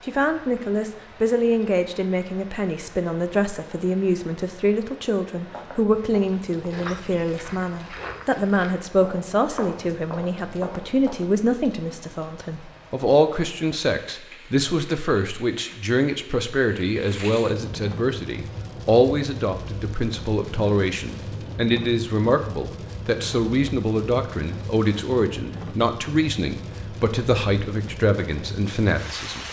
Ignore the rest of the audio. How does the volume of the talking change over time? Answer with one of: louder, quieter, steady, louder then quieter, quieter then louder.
steady.